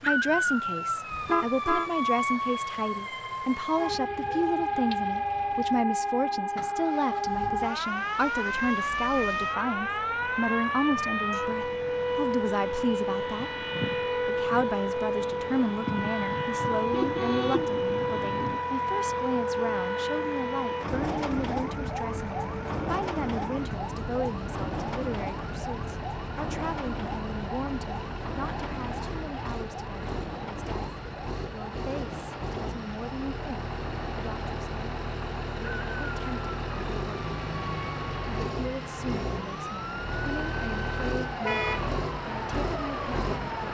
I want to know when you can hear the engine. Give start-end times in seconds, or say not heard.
0.0-43.7.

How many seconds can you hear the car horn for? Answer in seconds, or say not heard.
3 s.